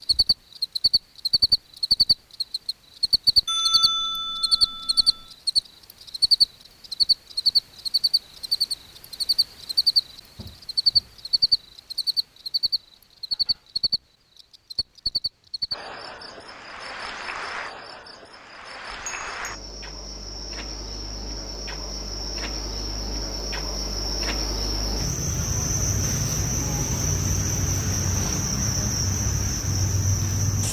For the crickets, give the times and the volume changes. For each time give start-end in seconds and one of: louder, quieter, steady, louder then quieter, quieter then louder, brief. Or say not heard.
0.0-30.6 quieter then louder.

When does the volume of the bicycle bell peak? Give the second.
4 s.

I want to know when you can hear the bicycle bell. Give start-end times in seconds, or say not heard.
3.5-5.3, 18.9-19.6.